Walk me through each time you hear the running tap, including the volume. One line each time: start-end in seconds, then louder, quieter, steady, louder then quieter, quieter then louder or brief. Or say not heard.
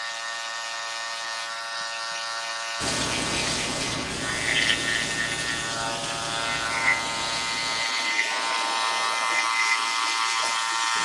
2.8-11.0 quieter.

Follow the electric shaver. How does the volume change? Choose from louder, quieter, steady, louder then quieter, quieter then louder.
louder.